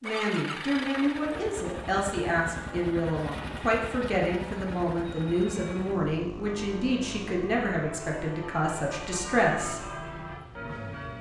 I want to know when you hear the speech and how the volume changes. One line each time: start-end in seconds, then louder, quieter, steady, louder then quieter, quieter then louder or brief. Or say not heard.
0.0-9.8 steady.